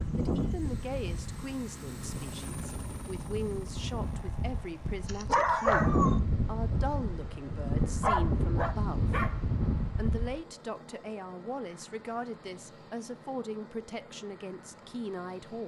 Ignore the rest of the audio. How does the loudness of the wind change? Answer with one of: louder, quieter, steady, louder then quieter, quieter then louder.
louder.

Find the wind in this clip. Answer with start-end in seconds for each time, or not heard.
0.0-10.4.